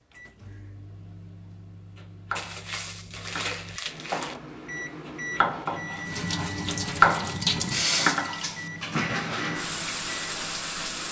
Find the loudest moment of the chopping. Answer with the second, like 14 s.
7 s.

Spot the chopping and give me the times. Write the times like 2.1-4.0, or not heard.
1.9-4.3, 5.0-6.0, 6.7-8.4.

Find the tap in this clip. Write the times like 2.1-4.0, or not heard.
6.0-11.0.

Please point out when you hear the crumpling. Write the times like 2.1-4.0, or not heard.
2.4-4.3.